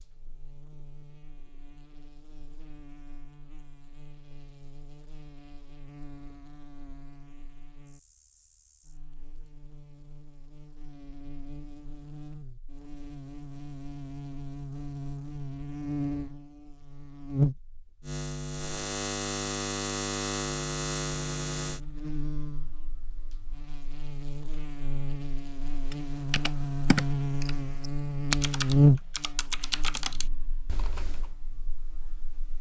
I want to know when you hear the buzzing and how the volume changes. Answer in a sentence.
You can hear the buzzing from 0.0 to 32.5 s, getting louder.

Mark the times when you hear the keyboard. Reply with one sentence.
You can hear the keyboard from 25.9 to 31.4 s.